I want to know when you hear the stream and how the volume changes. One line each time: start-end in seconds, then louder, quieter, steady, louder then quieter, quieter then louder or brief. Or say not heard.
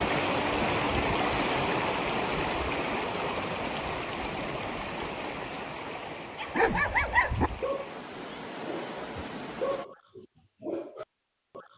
0.0-9.8 quieter.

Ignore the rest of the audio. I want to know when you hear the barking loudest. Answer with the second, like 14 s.
7 s.